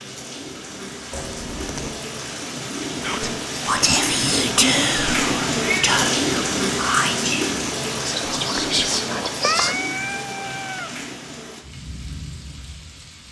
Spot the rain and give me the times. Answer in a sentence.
The rain can be heard from 0.0 to 13.2 s.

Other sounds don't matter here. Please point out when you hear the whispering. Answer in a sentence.
You can hear the whispering from 3.0 to 9.8 s.